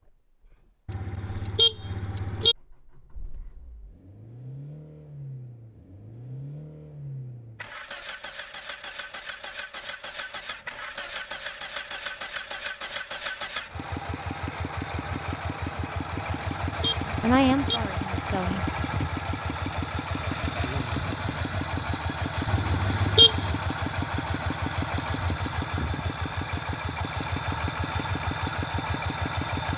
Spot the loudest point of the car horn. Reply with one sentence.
The loudest moment of the car horn is at 23 seconds.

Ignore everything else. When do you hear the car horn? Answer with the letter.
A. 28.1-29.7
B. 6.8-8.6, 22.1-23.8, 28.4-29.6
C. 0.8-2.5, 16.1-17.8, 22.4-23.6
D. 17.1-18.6
C.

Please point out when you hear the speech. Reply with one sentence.
The speech can be heard from 17.1 to 18.6 s.